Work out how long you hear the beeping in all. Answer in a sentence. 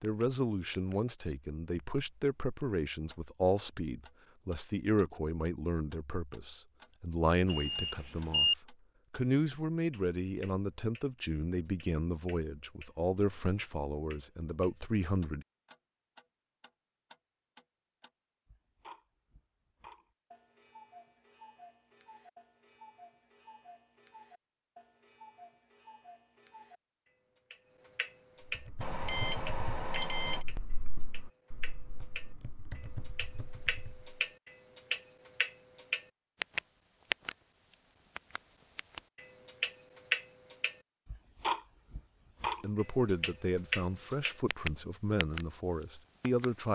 You can hear the beeping for 3 seconds altogether.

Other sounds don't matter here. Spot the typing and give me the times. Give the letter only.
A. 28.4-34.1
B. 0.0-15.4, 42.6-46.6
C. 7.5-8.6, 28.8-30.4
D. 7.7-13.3
A.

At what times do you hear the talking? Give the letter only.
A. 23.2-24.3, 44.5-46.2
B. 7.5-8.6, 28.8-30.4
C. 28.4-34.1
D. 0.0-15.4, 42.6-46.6
D.